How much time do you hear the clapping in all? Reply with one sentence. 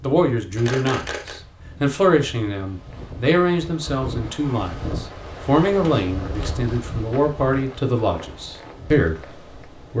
You can't hear the clapping here.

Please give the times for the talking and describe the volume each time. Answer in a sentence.
The talking can be heard from 0.0 to 9.9 s, at a steady volume.